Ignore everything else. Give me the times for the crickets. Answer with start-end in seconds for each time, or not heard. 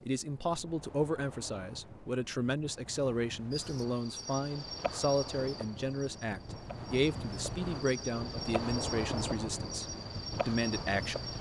3.5-11.3.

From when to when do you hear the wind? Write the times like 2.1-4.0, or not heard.
0.0-11.3.